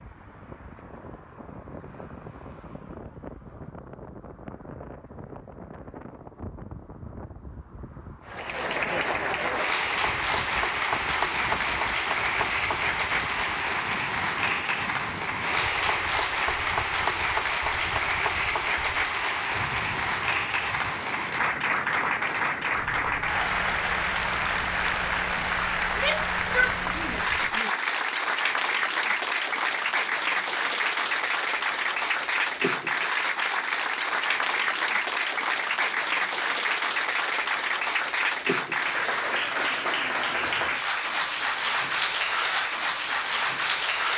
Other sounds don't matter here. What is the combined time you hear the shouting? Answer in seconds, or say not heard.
2 s.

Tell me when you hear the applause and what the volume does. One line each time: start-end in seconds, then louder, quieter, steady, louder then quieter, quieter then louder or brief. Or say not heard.
8.2-44.1 steady.